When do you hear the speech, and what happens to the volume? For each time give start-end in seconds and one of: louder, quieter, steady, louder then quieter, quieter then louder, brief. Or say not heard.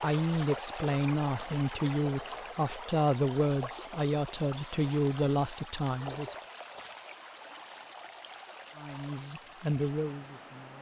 0.0-6.3 steady
8.8-10.7 brief.